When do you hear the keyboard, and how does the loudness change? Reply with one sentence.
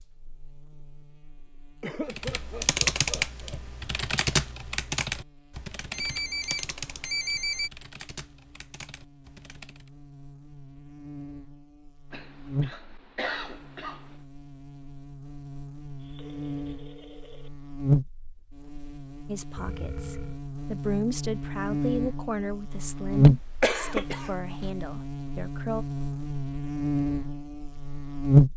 The keyboard can be heard from 2.1 to 9.9 s, getting quieter.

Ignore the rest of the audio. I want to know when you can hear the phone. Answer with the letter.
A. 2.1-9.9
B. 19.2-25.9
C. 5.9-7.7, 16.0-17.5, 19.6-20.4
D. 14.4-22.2
C.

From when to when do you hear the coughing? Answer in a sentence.
You can hear the coughing from 1.8 to 3.6 s, from 12.1 to 14.2 s and from 23.1 to 24.7 s.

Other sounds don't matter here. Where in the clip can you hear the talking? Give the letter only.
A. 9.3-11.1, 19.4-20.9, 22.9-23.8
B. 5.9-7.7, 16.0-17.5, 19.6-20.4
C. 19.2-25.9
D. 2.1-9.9
C.